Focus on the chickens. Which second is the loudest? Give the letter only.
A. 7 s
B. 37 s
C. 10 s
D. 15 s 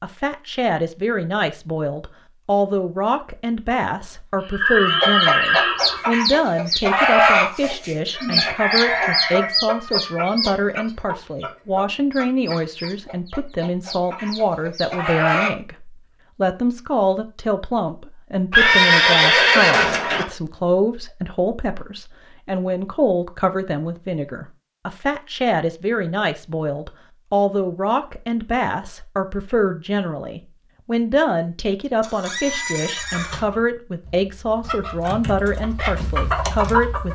A.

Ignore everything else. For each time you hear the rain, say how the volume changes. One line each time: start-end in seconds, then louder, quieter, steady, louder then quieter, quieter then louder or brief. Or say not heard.
not heard.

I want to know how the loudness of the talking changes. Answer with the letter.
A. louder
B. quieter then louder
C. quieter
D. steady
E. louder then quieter
D.